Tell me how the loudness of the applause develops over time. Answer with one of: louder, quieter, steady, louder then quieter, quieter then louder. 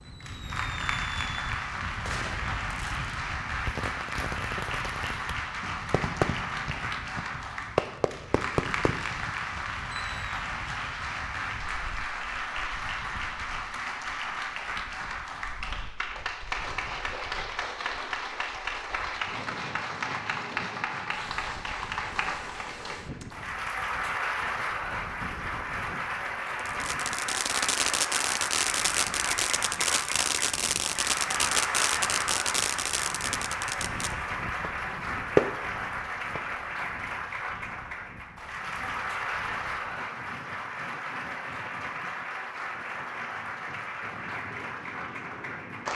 steady.